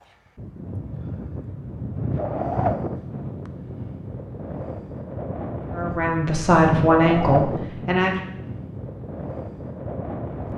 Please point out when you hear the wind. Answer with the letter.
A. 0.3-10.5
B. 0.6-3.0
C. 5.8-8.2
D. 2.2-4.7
A.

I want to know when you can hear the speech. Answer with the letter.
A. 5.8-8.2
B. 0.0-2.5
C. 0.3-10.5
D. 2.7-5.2
A.